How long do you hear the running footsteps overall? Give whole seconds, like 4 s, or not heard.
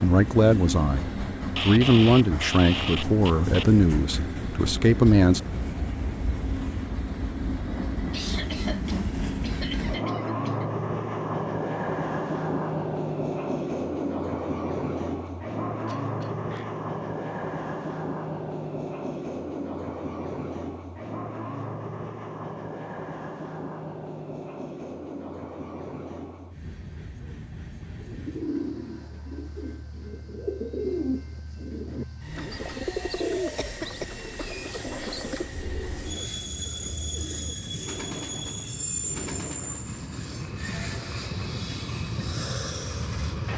not heard.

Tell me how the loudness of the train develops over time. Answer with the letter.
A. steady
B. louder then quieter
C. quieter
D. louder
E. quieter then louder
E.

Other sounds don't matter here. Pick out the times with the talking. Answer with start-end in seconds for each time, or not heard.
0.0-5.4.